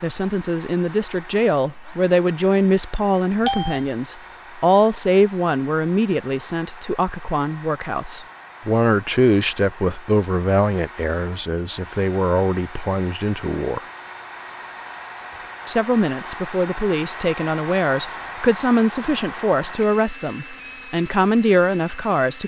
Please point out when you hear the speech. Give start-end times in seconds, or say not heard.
0.0-13.8, 15.7-22.4.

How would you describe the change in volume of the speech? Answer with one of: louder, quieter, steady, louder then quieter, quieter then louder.
steady.